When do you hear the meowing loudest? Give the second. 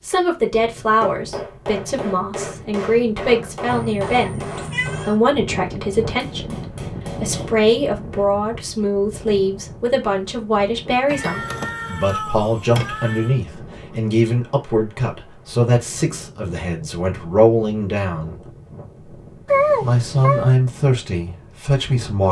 20 s.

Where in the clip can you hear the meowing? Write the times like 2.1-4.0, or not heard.
3.6-5.2, 11.1-13.3, 19.4-20.6.